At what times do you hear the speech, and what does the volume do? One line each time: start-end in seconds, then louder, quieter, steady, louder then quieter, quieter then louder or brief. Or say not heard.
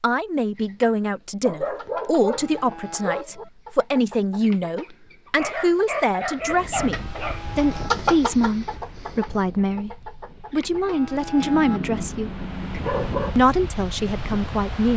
0.0-12.4 steady
13.3-14.9 brief.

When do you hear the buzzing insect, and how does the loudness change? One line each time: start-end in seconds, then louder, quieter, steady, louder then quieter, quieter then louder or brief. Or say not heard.
not heard.